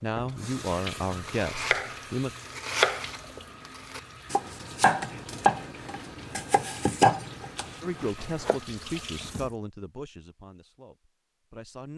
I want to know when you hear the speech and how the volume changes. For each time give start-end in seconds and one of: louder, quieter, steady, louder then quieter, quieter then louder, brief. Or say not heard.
0.0-2.3 brief
7.8-11.9 quieter.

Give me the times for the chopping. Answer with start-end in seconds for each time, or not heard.
1.1-8.6.